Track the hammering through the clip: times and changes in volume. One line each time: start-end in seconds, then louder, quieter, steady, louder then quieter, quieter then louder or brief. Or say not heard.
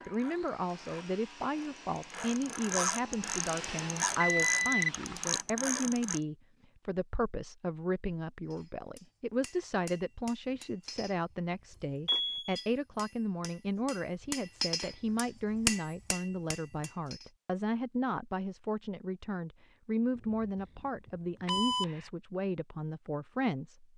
8.5-17.3 louder.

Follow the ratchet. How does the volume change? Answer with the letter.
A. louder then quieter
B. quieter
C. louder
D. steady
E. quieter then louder
C.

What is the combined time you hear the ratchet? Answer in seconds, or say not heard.
6 s.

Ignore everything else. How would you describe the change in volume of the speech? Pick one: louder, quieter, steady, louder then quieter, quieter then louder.
steady.